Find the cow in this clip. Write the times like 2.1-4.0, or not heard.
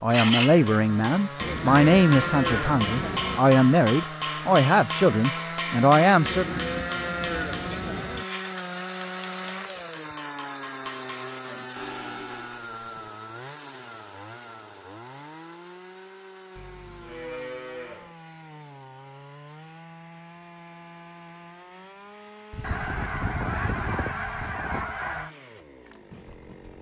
1.4-3.4, 6.2-8.2, 11.8-13.1, 16.6-18.1, 22.5-24.6.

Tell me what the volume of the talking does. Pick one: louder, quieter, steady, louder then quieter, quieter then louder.
steady.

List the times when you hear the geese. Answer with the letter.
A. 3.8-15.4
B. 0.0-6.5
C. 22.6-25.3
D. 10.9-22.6
C.